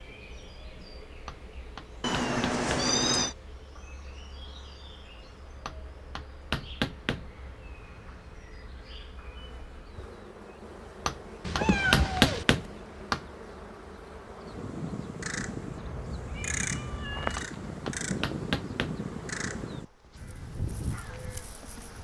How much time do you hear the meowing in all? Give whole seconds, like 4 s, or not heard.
4 s.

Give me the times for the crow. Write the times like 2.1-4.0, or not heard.
14.4-21.9.